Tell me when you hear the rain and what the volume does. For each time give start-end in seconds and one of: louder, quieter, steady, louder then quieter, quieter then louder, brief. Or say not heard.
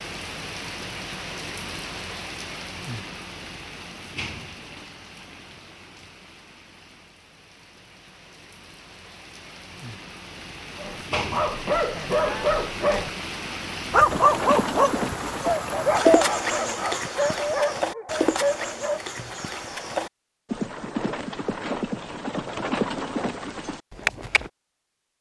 0.0-16.1 quieter then louder.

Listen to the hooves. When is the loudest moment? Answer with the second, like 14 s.
16 s.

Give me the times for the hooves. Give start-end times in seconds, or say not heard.
14.1-24.5.